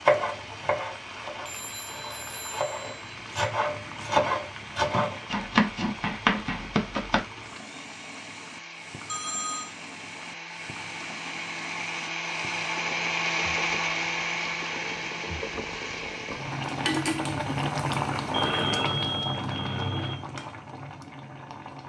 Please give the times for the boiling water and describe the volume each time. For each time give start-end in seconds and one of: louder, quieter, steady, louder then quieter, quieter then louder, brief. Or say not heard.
0.0-21.8 louder.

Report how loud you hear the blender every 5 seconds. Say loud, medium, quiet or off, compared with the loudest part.
quiet, quiet, loud, medium, off.